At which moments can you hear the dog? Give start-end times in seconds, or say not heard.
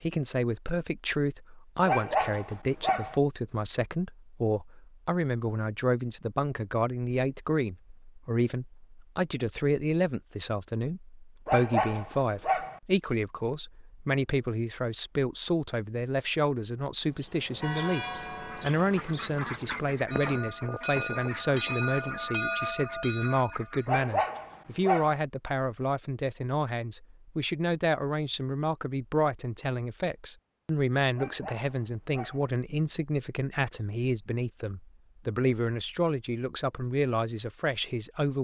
1.9-3.1, 11.4-12.8, 23.9-25.2, 31.1-32.5.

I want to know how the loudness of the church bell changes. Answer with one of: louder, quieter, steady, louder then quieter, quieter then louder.
quieter then louder.